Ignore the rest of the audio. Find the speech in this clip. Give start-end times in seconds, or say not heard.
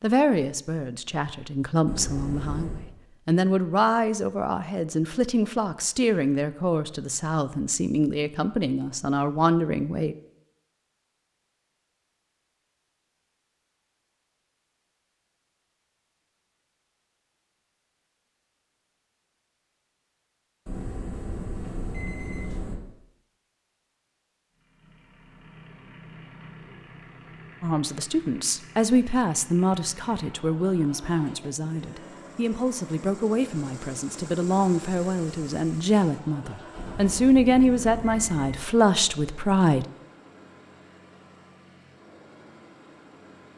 0.0-10.2, 27.6-39.9.